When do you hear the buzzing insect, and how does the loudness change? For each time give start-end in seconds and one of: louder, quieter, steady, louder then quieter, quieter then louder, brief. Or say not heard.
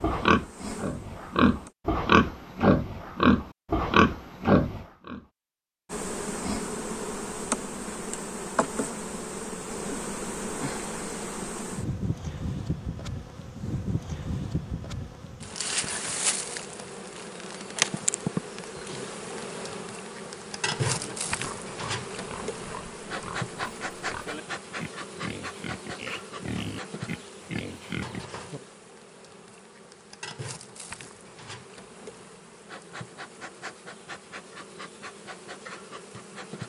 0.2-1.8 brief
5.9-36.6 quieter.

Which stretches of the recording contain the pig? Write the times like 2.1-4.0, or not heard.
0.0-5.3, 20.9-28.2.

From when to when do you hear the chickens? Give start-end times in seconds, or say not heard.
not heard.